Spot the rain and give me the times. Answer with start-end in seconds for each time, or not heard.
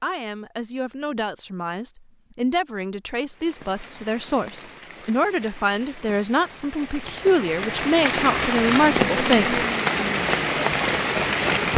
3.2-11.7.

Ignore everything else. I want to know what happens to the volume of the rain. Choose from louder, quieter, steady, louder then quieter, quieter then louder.
louder.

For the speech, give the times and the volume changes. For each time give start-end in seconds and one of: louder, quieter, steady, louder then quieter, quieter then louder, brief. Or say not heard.
0.0-9.6 louder.